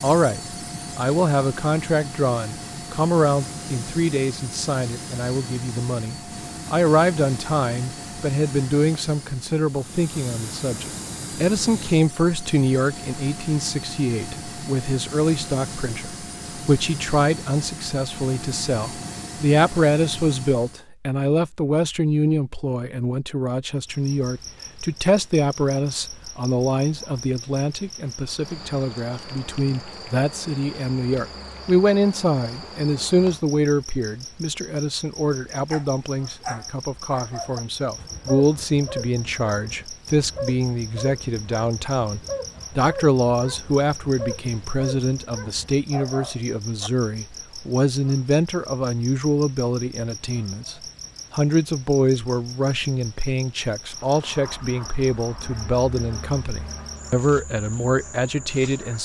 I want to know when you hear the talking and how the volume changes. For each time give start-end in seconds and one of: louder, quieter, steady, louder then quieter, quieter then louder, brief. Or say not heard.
0.0-59.0 steady.